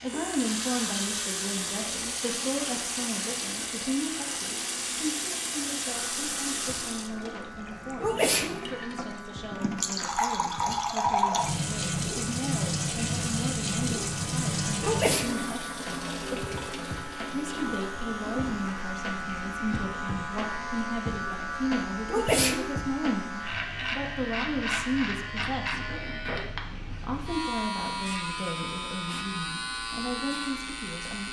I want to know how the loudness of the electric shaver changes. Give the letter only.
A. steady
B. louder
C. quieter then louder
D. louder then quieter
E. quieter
B.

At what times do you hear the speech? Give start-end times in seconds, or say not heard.
0.0-15.7, 17.3-25.9, 27.0-31.2.